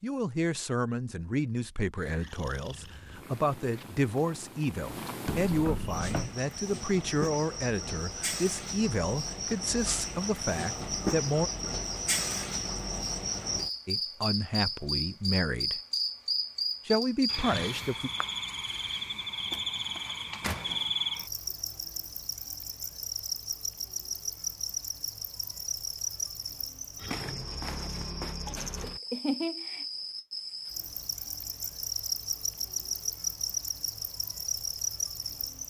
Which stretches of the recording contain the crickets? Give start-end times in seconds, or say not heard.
5.8-35.6.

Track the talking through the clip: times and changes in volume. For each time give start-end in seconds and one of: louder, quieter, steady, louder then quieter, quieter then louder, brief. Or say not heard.
0.0-11.5 steady
13.8-15.8 brief
16.9-18.1 brief.